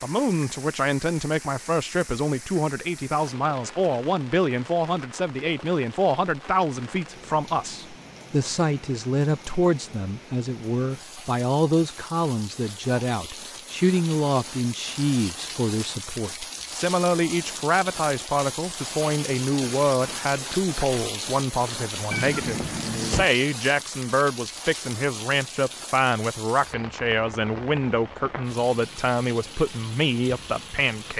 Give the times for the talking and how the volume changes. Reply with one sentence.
The talking can be heard from 0.0 to 31.1 s, at a steady volume.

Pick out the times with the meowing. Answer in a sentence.
The meowing can be heard from 22.1 to 23.2 s.